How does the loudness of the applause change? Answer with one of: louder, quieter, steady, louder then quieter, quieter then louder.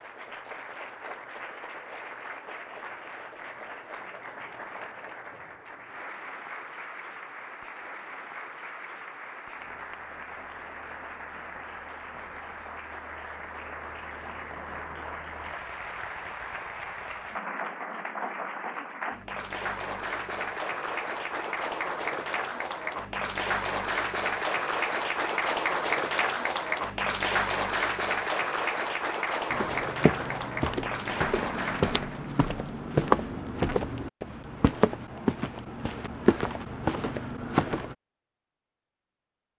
louder.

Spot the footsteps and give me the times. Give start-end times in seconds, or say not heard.
29.5-38.0.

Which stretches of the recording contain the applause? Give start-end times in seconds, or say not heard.
0.0-32.3.